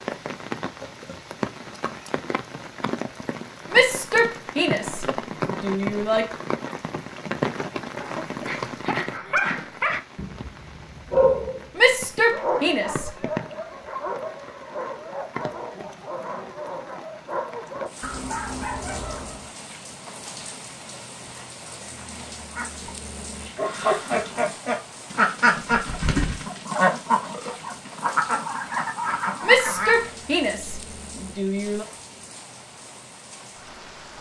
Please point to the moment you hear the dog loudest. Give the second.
11 s.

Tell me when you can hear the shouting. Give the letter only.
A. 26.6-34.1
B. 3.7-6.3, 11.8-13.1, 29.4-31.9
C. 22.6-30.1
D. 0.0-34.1
B.